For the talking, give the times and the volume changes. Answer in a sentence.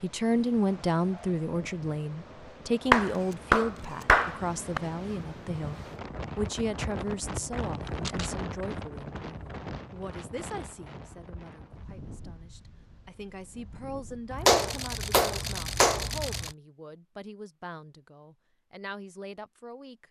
The talking can be heard from 0.0 to 20.0 s, getting quieter.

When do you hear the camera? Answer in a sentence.
The camera can be heard from 3.0 to 4.2 s, from 7.8 to 8.3 s and from 14.3 to 16.6 s.